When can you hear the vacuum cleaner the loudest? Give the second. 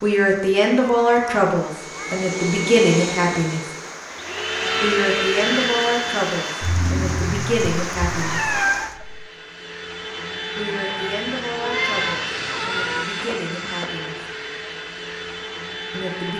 5 s.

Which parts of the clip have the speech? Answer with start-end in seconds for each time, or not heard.
0.0-3.6, 4.8-8.4, 10.6-14.2, 15.9-16.3.